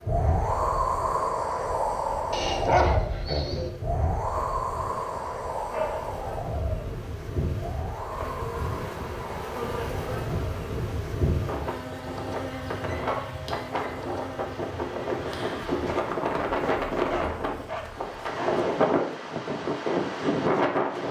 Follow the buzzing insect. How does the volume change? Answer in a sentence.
The loudness of the buzzing insect goes up, then down.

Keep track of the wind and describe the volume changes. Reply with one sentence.
The loudness of the wind goes down, then up.